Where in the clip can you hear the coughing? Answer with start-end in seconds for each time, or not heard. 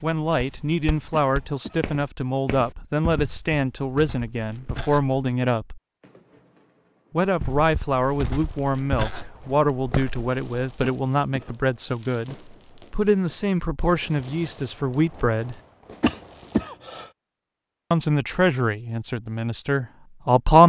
1.1-1.8, 10.8-11.6, 16.0-17.1.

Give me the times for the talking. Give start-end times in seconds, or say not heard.
0.0-5.8, 7.1-15.6, 17.9-20.6.